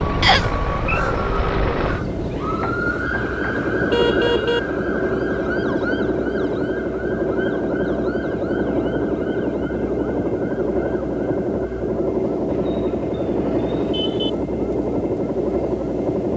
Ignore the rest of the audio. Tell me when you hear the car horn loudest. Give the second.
4 s.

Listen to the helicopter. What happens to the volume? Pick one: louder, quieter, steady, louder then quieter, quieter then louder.
steady.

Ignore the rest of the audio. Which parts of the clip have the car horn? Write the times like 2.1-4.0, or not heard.
2.6-4.6, 12.4-14.3.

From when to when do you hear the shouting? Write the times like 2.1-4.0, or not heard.
not heard.